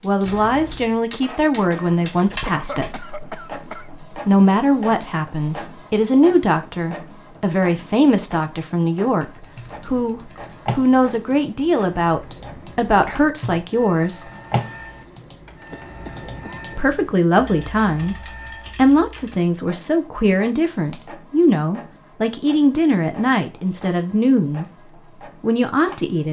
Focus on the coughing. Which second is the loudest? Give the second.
3 s.